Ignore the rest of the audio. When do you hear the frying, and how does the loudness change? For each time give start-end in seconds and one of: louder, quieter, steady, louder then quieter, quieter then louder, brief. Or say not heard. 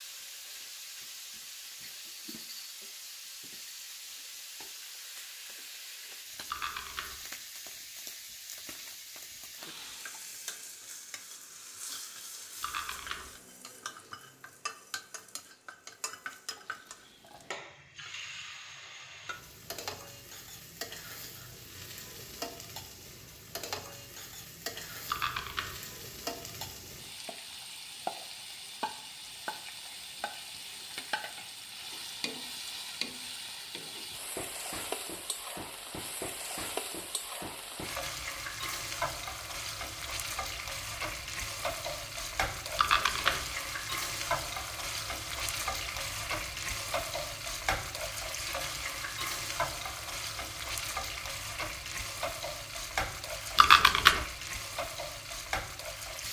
0.0-56.2 louder.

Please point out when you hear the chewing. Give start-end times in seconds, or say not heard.
6.5-7.2, 12.6-13.3, 25.1-25.8, 42.8-43.5, 53.5-54.2.